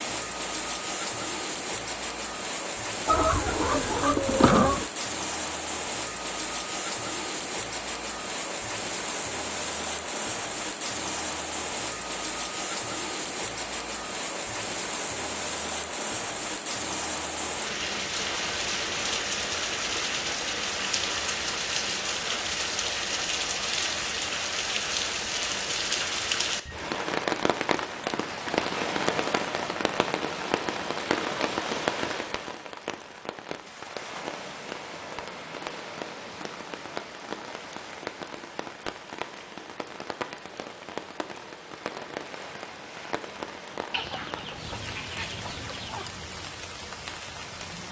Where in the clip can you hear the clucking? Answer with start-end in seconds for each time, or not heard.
3.0-4.8, 43.9-46.1.